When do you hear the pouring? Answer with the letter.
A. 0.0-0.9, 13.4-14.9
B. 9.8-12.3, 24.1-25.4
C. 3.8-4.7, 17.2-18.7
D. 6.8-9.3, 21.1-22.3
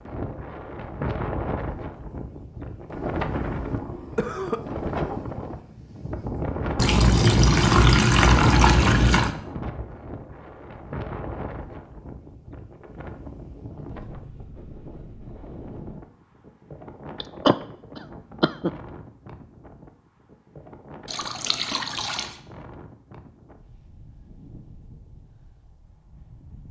D.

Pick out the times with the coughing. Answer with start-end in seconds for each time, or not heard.
3.8-4.7, 17.2-18.7.